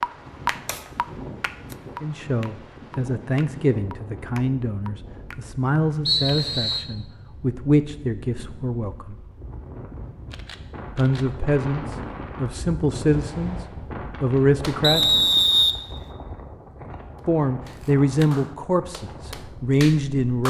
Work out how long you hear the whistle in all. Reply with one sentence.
You can hear the whistle for 2 seconds altogether.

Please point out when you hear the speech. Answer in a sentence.
You can hear the speech from 2.0 to 9.2 s, from 10.9 to 15.2 s and from 17.2 to 20.4 s.